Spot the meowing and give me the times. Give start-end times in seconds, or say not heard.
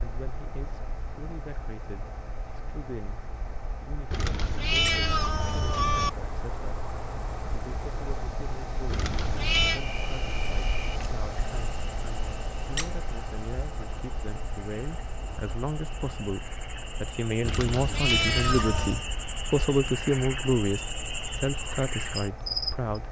4.1-6.1, 8.9-9.8, 17.4-19.1.